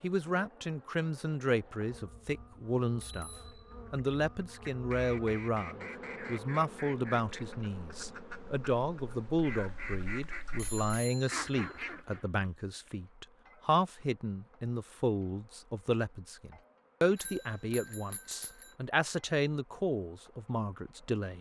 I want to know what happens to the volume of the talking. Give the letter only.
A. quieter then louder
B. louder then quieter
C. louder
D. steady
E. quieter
D.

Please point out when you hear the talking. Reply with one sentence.
The talking can be heard from 0.0 to 3.3 s and from 3.9 to 21.3 s.